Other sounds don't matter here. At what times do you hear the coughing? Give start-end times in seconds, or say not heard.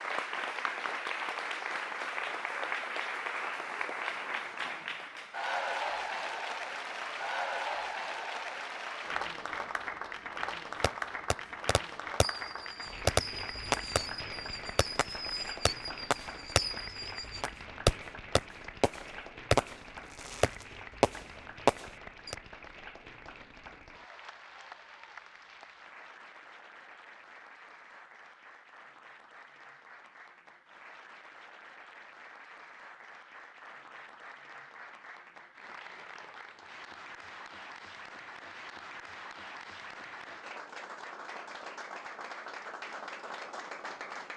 not heard.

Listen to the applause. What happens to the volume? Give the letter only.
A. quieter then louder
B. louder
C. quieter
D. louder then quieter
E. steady
A.